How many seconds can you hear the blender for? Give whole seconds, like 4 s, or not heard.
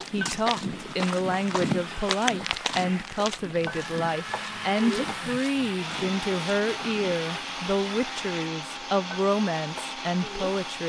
7 s.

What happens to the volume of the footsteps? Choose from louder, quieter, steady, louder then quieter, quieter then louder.
quieter.